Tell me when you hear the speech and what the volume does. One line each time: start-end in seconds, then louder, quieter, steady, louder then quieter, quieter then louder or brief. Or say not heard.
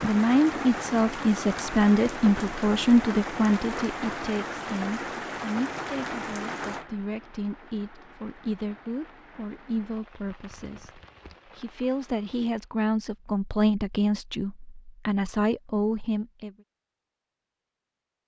0.0-16.5 quieter then louder.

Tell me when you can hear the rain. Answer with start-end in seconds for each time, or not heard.
0.0-12.6.